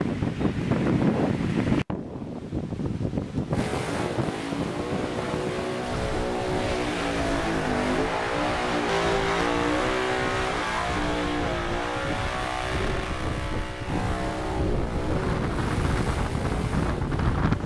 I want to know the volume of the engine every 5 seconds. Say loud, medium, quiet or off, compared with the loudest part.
medium, loud, loud, medium.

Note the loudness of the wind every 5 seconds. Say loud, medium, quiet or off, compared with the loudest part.
loud, medium, medium, loud.